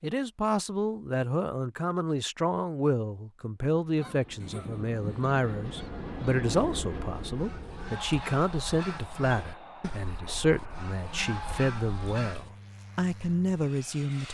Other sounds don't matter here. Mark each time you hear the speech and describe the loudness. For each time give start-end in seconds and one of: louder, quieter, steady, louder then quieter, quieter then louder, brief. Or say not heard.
0.0-14.2 steady.